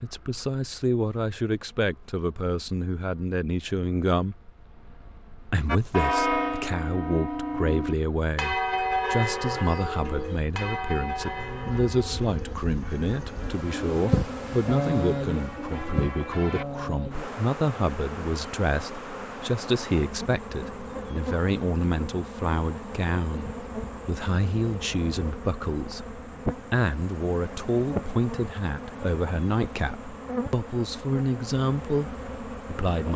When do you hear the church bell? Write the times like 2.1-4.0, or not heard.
5.7-16.6.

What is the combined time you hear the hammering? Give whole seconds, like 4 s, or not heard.
not heard.